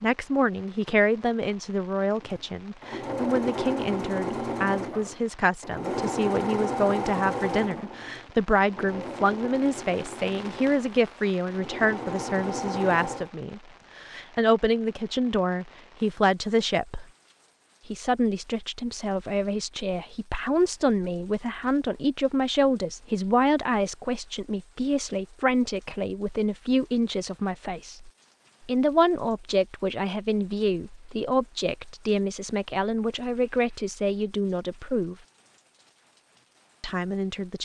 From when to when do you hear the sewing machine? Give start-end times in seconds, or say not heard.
2.1-13.3.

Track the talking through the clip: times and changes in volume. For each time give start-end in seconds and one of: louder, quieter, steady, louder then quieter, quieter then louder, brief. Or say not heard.
0.0-17.1 steady
17.9-35.1 steady
36.8-37.5 brief.